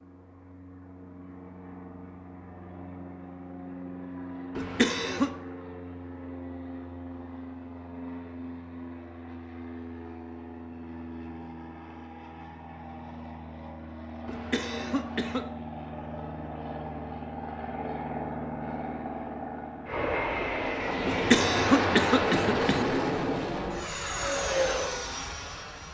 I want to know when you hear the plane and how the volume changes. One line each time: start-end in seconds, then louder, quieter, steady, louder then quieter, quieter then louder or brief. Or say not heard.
0.0-25.8 louder.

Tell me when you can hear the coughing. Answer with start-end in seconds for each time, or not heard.
4.5-5.3, 14.2-15.4, 21.1-22.9.